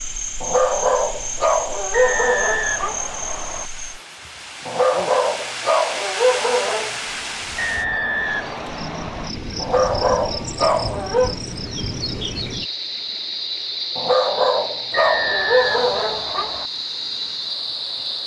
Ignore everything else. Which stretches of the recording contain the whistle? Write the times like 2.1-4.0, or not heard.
1.9-3.7, 7.5-9.3, 14.9-16.7.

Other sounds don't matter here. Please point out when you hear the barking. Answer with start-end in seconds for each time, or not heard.
0.4-3.0, 4.7-7.0, 9.6-11.4, 13.9-16.5.